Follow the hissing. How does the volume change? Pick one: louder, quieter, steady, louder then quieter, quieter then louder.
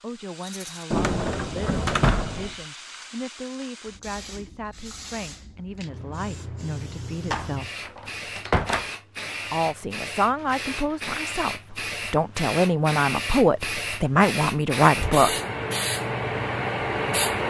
louder.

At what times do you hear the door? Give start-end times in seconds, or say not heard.
0.9-2.5, 7.3-8.8, 14.8-15.2.